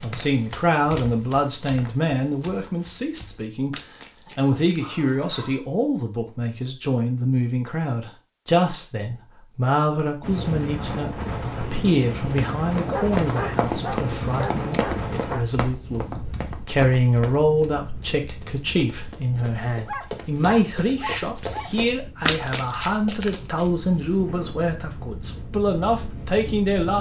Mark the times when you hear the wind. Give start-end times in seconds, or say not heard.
10.2-26.9.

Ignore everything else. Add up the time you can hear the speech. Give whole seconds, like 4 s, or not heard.
26 s.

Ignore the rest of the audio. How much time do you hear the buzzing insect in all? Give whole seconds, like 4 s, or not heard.
not heard.